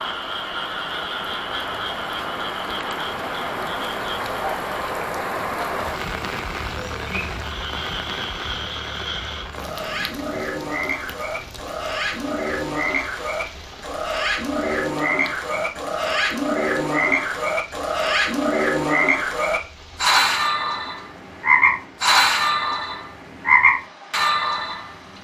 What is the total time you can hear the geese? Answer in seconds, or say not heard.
not heard.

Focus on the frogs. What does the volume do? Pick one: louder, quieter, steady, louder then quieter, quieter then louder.
louder.